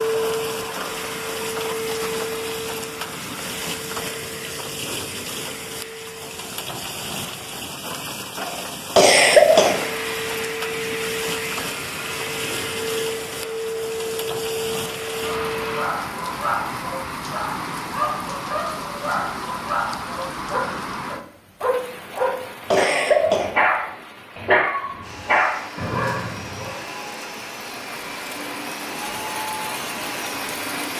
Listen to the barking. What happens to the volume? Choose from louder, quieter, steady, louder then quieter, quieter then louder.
louder.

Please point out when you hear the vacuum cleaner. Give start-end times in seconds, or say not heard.
0.0-7.7, 9.5-15.9, 25.0-30.9.